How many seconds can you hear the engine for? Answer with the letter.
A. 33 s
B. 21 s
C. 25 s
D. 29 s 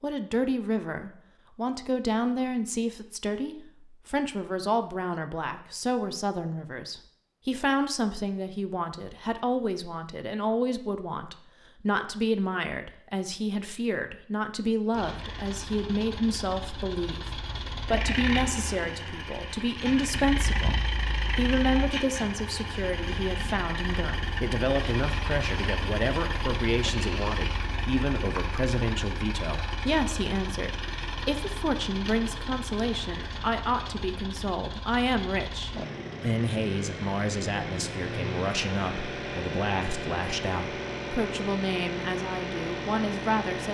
D.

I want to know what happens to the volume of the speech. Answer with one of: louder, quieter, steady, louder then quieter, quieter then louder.
steady.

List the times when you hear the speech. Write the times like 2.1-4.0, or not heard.
0.0-43.6.